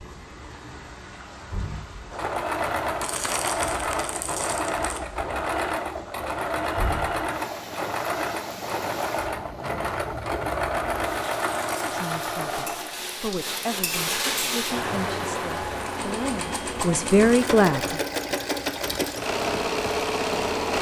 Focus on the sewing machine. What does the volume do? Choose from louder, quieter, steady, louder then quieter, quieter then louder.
quieter then louder.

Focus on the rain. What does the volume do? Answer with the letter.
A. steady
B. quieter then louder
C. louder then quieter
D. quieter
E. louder
C.